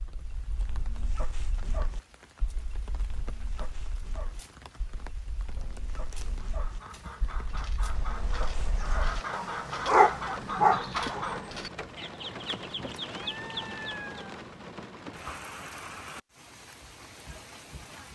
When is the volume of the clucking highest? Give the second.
11 s.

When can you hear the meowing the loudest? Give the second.
14 s.